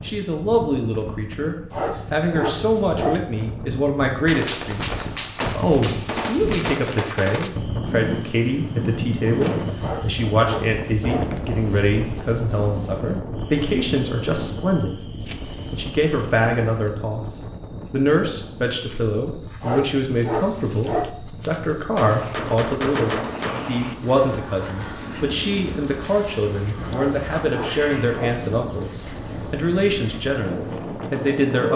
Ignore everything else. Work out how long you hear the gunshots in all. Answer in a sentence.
The gunshots can be heard for 5 seconds in total.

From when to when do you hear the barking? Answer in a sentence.
You can hear the barking from 1.7 to 3.2 s, from 9.8 to 11.3 s, from 19.6 to 21.1 s and from 26.9 to 28.4 s.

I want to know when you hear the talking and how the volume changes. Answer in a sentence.
You can hear the talking from 0.0 to 31.7 s, at a steady volume.